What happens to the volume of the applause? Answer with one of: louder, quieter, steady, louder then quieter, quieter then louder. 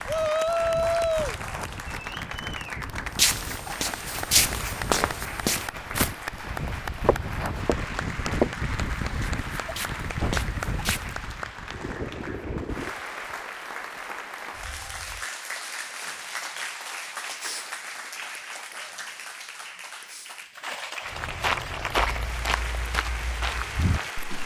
steady.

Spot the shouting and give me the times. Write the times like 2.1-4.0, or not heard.
0.1-1.4.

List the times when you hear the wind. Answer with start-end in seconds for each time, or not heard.
0.0-12.9.